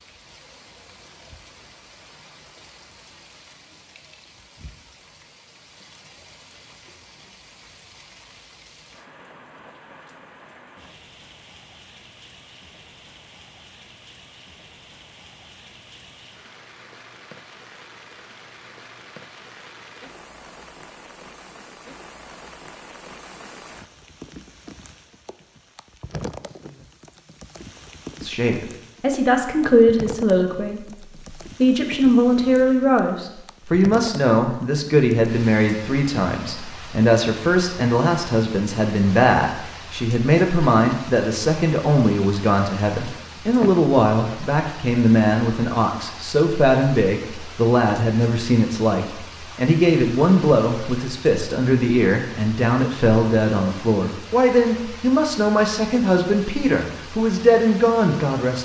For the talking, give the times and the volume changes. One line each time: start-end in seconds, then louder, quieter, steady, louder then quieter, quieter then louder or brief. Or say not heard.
28.2-58.6 steady.